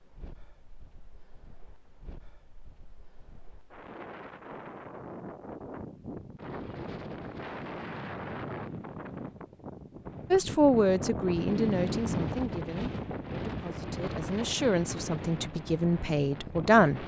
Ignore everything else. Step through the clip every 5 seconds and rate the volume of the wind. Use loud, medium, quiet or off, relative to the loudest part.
quiet, medium, loud, medium.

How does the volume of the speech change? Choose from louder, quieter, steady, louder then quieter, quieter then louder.
quieter then louder.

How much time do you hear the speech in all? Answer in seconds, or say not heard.
7 s.